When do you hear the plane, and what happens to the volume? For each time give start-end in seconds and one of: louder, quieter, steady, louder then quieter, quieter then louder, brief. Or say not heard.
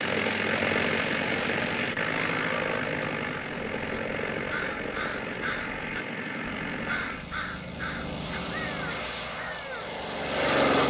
0.0-10.8 quieter.